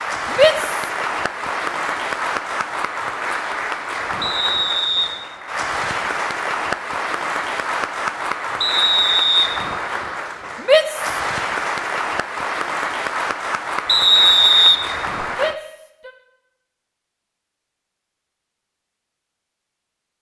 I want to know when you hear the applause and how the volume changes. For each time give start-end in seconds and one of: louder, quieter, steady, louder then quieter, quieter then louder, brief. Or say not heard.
0.0-15.6 steady.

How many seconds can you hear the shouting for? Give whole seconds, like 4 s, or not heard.
2 s.